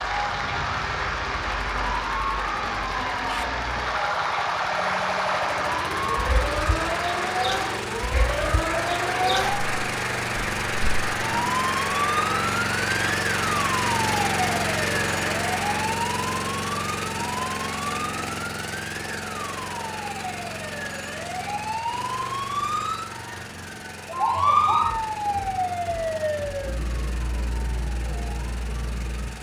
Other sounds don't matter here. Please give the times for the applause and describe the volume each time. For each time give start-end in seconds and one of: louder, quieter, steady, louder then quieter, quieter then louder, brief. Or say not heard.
0.0-15.9 steady.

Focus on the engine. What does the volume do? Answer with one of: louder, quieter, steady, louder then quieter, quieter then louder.
louder then quieter.